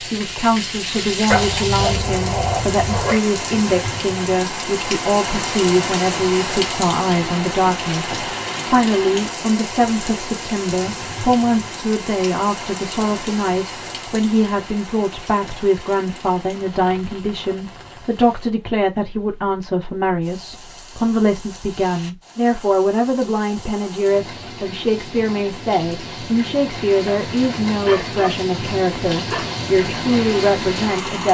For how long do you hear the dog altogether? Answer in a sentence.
You can hear the dog for 4 seconds altogether.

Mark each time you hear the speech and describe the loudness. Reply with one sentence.
The speech can be heard from 0.0 to 31.2 s, at a steady volume.